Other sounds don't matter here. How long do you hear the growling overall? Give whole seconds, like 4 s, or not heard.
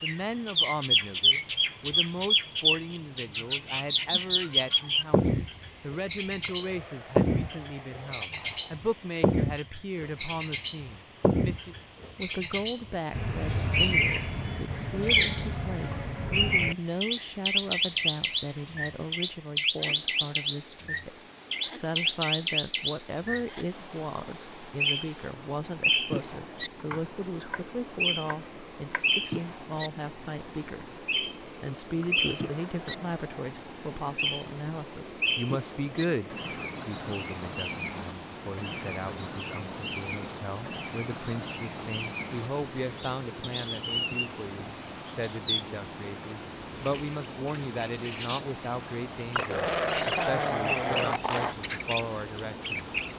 6 s.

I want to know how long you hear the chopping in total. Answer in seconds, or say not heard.
3 s.